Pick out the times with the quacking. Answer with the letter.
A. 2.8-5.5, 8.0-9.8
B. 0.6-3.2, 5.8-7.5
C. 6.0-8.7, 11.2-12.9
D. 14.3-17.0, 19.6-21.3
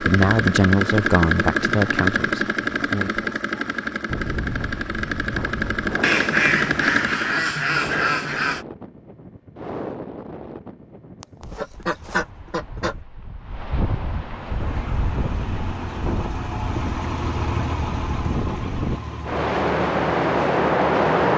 C.